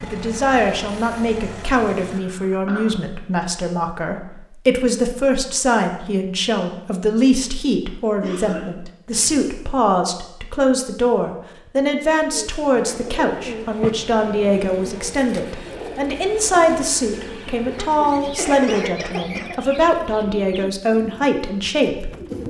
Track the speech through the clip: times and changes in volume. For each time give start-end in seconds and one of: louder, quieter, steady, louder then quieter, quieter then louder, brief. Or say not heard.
0.0-22.4 steady.